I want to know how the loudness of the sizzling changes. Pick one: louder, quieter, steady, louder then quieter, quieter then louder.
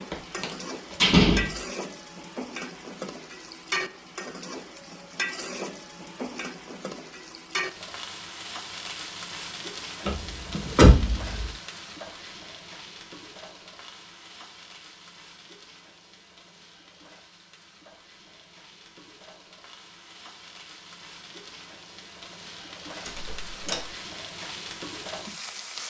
quieter then louder.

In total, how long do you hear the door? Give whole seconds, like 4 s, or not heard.
4 s.